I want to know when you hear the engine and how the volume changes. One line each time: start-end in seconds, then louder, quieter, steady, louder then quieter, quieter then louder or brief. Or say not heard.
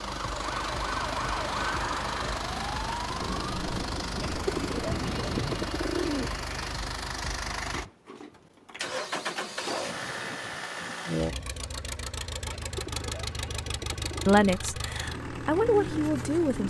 0.0-16.6 steady.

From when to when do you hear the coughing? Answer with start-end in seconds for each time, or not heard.
not heard.